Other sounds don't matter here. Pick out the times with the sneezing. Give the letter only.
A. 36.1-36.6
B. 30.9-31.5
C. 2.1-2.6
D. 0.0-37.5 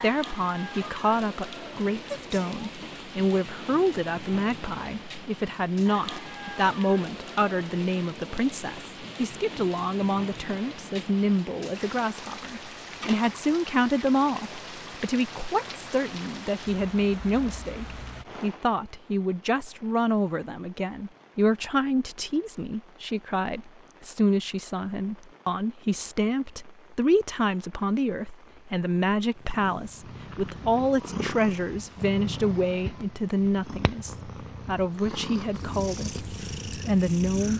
C.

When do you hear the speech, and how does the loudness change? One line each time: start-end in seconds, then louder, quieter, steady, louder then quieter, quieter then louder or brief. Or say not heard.
0.0-37.5 steady.